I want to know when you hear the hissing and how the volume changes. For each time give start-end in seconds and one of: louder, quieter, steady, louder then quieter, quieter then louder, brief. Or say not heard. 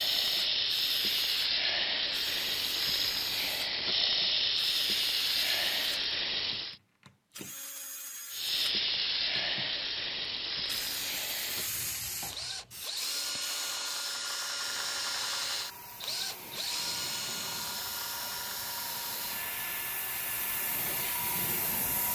0.0-6.8 steady
8.3-22.1 quieter then louder.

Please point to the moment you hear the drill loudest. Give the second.
15 s.